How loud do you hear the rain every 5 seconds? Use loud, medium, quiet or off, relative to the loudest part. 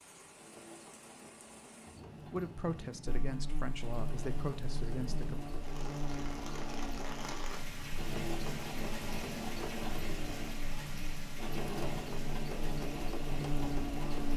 medium, loud, loud.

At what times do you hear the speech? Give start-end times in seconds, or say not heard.
2.2-5.5.